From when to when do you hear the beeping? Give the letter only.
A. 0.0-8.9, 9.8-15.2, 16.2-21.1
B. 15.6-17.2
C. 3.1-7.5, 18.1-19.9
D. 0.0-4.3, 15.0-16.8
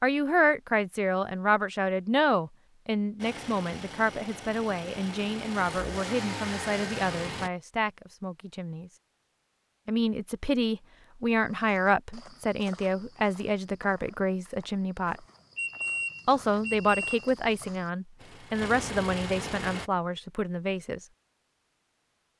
B.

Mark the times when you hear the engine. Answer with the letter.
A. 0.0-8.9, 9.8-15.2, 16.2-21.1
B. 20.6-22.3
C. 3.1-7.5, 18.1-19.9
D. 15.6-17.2
C.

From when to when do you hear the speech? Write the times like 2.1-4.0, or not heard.
0.0-8.9, 9.8-15.2, 16.2-21.1.